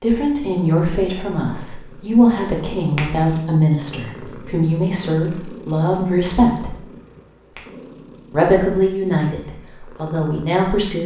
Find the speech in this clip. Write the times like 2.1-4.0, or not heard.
0.0-6.8, 8.3-11.0.